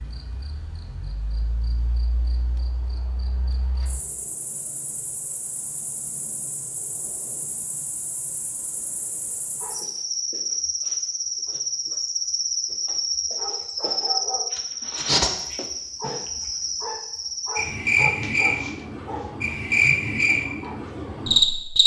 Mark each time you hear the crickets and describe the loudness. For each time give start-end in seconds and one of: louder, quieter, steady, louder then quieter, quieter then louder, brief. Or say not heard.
0.0-21.8 louder.